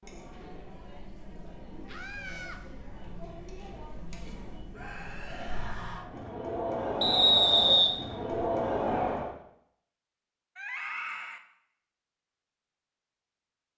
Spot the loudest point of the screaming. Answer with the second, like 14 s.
11 s.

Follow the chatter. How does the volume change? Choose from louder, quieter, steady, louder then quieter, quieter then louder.
louder.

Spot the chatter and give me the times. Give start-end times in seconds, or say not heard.
0.0-9.3.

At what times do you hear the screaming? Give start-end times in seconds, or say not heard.
1.9-2.6, 4.7-6.1, 10.6-11.4.